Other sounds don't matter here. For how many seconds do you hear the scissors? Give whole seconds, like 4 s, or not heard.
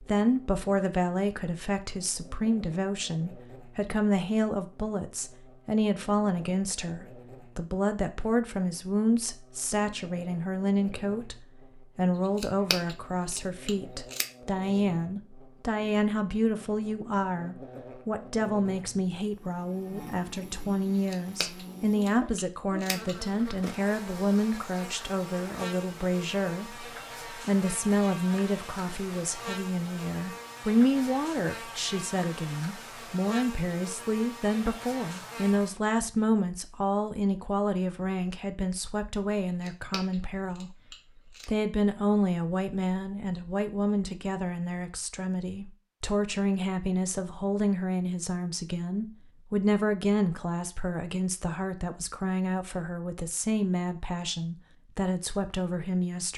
6 s.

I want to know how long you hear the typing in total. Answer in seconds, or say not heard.
not heard.